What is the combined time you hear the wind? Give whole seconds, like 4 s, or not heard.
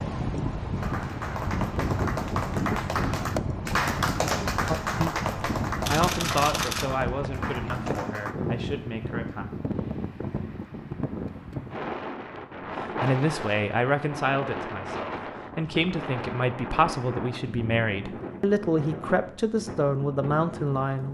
21 s.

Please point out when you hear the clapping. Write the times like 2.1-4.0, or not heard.
0.8-8.3.